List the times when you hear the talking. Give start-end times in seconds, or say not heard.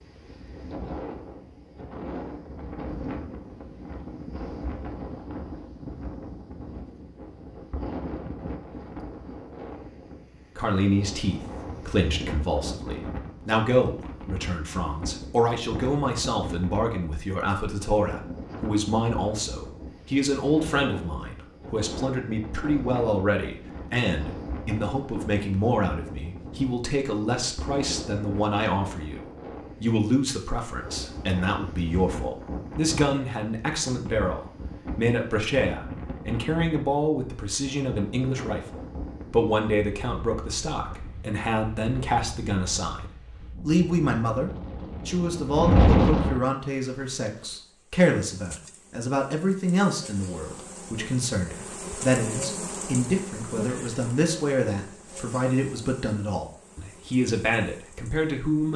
10.6-58.7.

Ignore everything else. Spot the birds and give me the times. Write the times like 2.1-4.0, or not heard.
not heard.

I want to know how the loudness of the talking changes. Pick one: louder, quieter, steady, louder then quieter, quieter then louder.
steady.